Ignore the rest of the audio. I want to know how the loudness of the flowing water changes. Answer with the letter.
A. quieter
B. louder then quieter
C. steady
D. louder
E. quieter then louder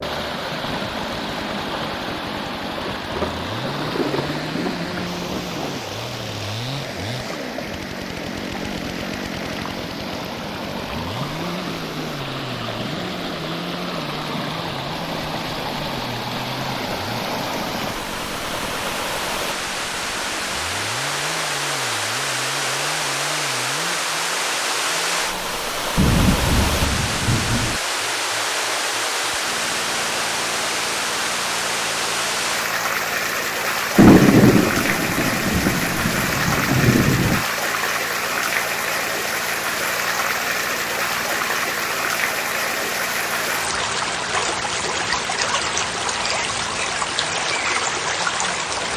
D.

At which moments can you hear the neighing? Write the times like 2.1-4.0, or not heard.
not heard.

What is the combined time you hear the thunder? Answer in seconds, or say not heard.
8 s.